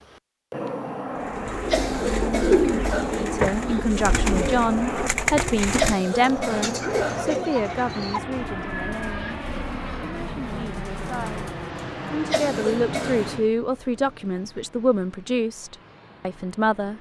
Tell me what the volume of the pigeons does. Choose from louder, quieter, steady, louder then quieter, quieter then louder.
quieter.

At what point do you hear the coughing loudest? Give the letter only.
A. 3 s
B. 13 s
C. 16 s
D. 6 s
D.